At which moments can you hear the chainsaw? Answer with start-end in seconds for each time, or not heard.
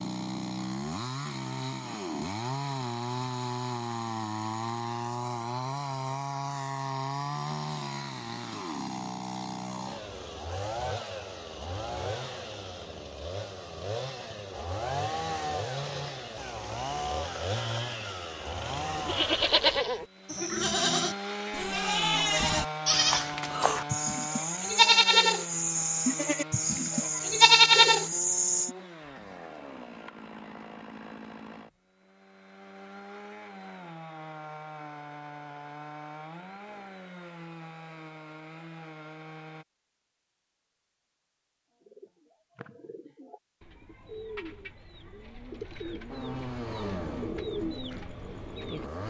0.0-39.6, 46.0-49.0.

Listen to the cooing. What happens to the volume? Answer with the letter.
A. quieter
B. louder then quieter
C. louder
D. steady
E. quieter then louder
C.